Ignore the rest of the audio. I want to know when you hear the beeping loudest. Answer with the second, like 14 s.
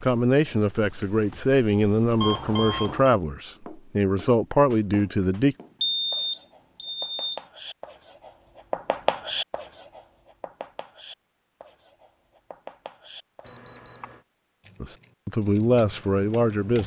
6 s.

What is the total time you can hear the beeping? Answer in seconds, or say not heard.
3 s.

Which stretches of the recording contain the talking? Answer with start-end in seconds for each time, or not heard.
0.0-5.5, 14.8-16.8.